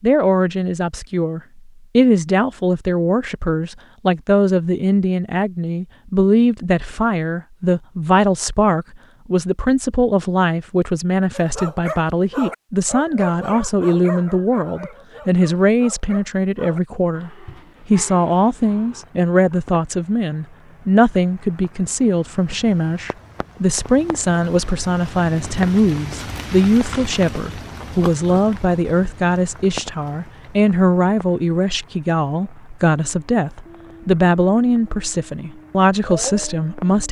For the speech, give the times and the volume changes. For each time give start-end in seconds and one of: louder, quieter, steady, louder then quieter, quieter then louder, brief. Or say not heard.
0.0-37.0 steady.